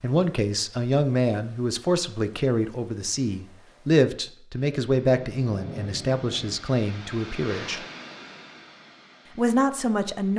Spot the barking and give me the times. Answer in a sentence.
You can't hear the barking here.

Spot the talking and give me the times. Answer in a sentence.
You can hear the talking from 0.0 to 7.8 s and from 9.3 to 10.3 s.